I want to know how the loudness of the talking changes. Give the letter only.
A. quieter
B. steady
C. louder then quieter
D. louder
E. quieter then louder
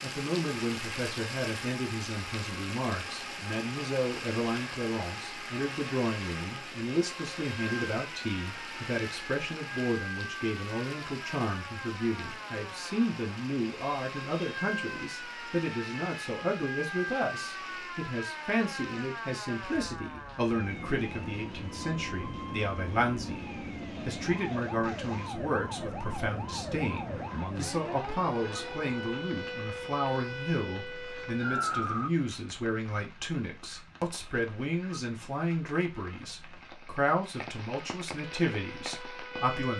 B.